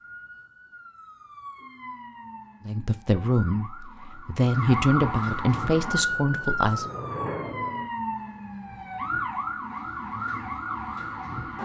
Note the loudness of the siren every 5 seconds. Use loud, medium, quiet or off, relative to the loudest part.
medium, loud, loud.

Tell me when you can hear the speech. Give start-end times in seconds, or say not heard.
2.6-6.9.